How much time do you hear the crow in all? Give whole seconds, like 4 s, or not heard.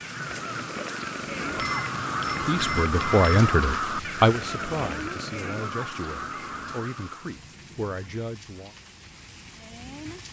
7 s.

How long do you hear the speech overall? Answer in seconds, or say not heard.
6 s.